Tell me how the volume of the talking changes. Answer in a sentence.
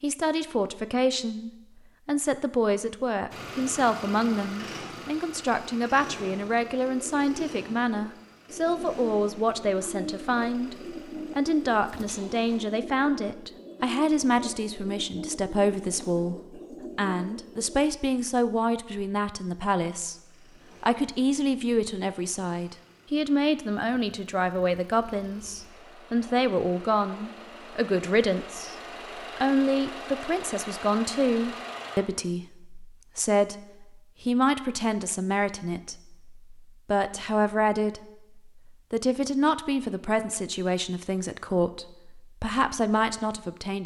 The loudness of the talking stays about the same.